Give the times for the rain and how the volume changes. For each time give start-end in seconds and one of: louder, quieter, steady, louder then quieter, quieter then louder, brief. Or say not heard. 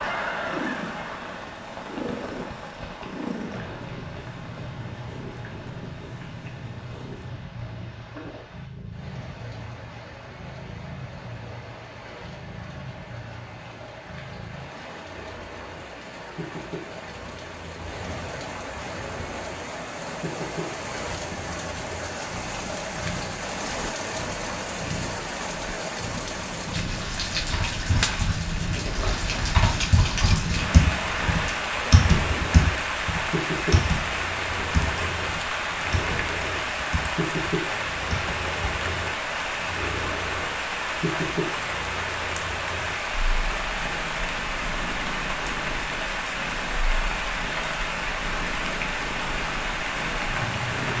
0.0-50.9 louder.